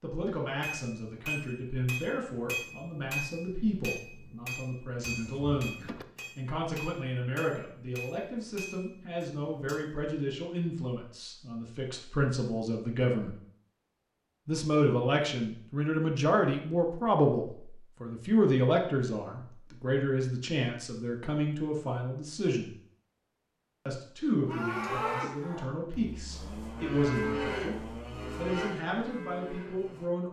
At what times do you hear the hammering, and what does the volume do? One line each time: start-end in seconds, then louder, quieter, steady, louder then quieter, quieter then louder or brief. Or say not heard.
0.6-10.0 quieter.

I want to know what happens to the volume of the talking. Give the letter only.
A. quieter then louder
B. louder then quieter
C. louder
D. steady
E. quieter
B.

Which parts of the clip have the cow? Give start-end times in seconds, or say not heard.
24.4-30.1.